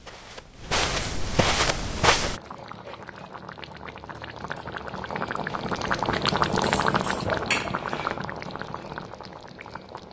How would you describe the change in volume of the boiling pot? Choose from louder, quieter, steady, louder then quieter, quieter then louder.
louder then quieter.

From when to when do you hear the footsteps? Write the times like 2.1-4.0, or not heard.
0.0-2.4.